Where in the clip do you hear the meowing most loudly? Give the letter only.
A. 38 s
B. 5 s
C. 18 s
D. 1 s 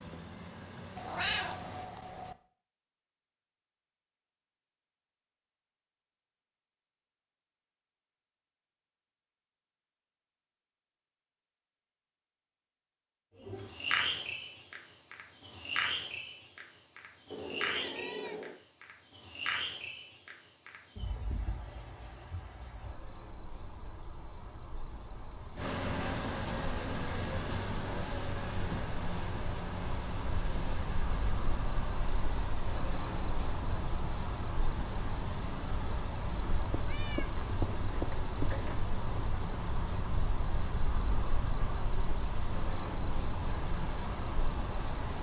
D.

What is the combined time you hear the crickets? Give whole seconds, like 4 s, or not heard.
32 s.